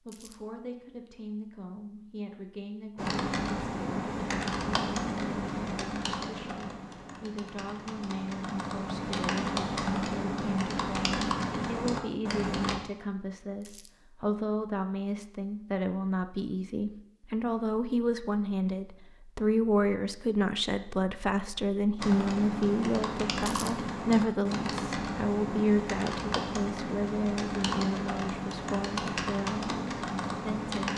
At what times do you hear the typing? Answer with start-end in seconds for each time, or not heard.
3.0-12.8, 21.9-30.9.